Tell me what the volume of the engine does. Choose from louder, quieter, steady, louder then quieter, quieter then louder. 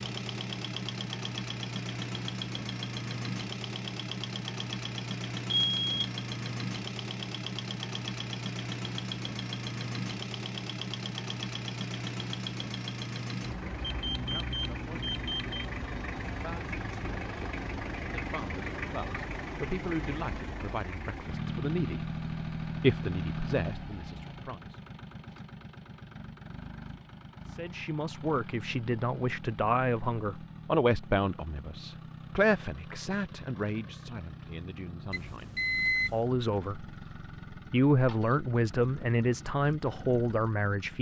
quieter.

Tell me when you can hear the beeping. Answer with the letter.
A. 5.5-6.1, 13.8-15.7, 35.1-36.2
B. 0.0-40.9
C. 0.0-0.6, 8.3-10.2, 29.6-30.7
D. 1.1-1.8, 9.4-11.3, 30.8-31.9
A.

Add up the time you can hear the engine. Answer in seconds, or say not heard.
41 s.